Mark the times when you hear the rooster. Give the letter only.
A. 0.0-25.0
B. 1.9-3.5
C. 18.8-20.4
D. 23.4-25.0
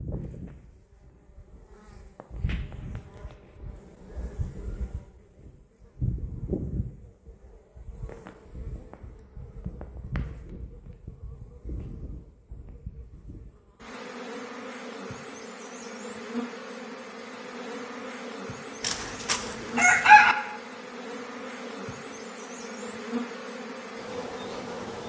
C.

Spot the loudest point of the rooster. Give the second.
20 s.